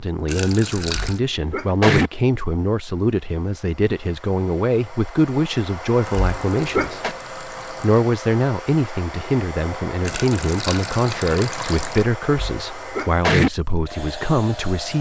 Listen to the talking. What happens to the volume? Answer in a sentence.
The volume of the talking stays about the same.